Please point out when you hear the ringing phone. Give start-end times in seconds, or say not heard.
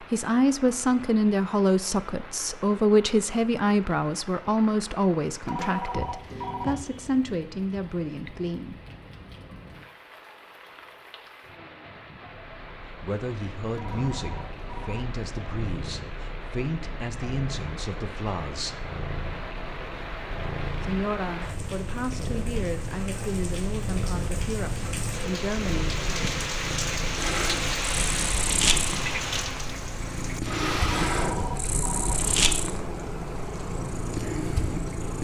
5.5-6.8, 13.8-15.1, 30.9-32.1.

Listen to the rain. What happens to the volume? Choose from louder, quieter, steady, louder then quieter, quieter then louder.
louder.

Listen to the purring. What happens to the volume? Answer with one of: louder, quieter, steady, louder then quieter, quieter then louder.
louder.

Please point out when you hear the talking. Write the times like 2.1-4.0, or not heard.
0.1-8.8, 13.0-18.8, 20.8-25.9.